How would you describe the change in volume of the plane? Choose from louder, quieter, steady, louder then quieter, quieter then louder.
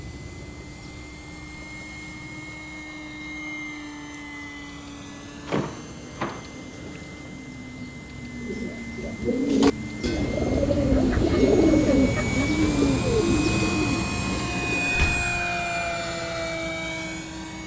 louder.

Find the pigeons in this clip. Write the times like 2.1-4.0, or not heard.
8.3-15.1.